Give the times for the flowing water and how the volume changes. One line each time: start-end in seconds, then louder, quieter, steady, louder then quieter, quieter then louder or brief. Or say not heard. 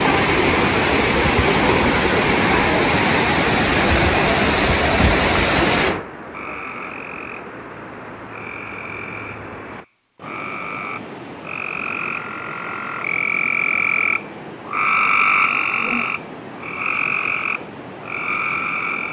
0.0-19.0 quieter.